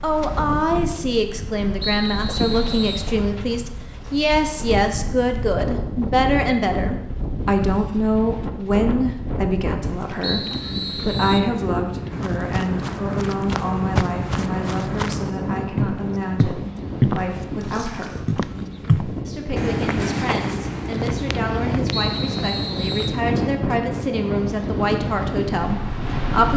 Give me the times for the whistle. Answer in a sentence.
The whistle can be heard from 1.8 to 3.1 s, from 10.2 to 11.5 s and from 21.9 to 23.2 s.